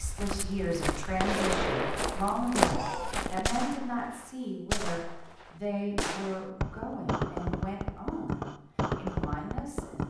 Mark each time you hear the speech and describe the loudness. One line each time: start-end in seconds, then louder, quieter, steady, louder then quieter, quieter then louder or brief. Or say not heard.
0.0-10.0 quieter.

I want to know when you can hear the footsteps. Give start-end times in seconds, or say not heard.
0.0-3.6.